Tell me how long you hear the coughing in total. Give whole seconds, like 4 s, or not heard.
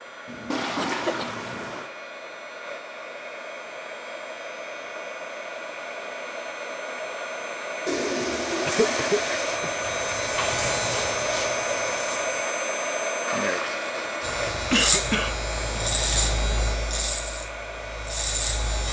4 s.